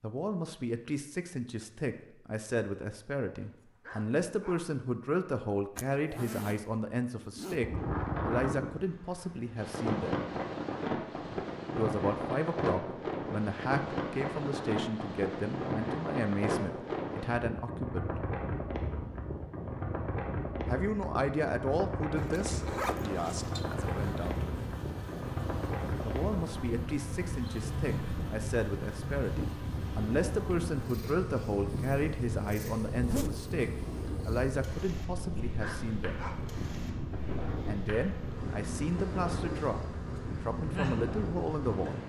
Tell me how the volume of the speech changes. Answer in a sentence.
The volume of the speech stays about the same.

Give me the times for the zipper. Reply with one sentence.
You can hear the zipper from 5.8 to 7.6 s, from 22.1 to 23.7 s and from 32.9 to 33.4 s.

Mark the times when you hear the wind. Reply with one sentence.
The wind can be heard from 7.5 to 42.0 s.